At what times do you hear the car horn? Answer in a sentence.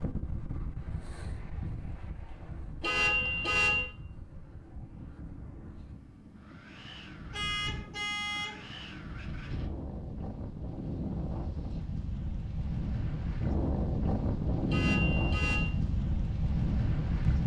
You can hear the car horn from 2.8 to 3.9 s, from 7.3 to 8.6 s and from 14.7 to 15.8 s.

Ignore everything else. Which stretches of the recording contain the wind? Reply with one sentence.
The wind can be heard from 0.0 to 17.4 s.